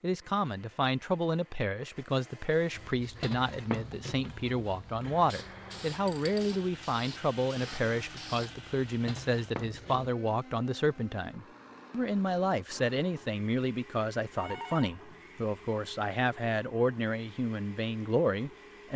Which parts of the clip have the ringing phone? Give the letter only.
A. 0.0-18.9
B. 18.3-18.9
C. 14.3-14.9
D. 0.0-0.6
C.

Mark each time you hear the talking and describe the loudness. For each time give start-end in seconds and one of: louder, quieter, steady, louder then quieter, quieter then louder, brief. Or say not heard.
0.0-18.9 steady.